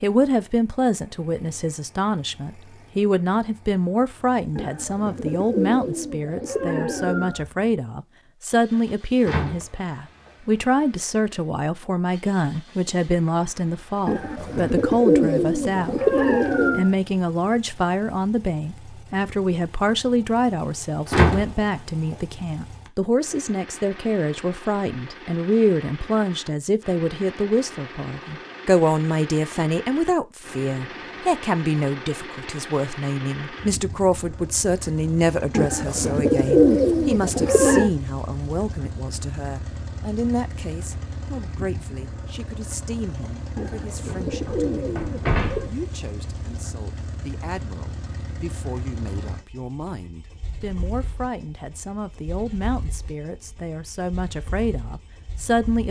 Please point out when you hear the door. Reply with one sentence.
The door can be heard from 9.2 to 10.3 s, from 21.1 to 22.1 s and from 44.0 to 45.8 s.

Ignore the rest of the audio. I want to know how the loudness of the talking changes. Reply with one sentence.
The volume of the talking goes down.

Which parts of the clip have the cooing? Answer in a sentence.
You can hear the cooing from 4.5 to 7.5 s, from 14.1 to 16.9 s, from 35.5 to 37.9 s and from 43.5 to 45.7 s.